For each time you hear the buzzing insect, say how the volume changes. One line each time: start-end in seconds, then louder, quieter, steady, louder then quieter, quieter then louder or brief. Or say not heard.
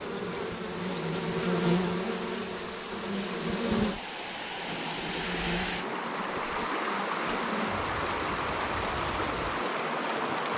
0.0-10.5 quieter.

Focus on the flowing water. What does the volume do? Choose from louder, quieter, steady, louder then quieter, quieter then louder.
louder.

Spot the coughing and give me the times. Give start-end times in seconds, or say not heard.
not heard.